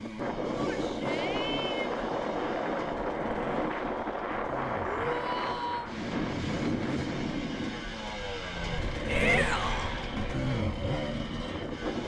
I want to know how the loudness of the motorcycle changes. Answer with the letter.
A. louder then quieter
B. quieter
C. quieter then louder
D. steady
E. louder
E.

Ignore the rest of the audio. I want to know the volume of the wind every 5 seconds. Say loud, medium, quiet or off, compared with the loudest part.
loud, loud, medium.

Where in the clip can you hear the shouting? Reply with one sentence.
The shouting can be heard from 0.6 to 2.0 s, from 4.8 to 5.9 s and from 9.1 to 9.9 s.